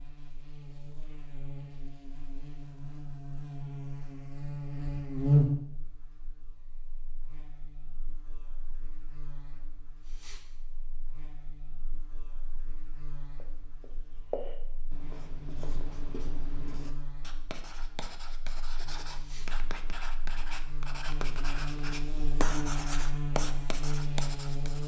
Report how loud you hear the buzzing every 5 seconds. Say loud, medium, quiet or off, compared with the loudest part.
medium, loud, quiet, quiet, medium.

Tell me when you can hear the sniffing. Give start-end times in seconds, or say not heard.
10.0-10.4, 19.1-19.5.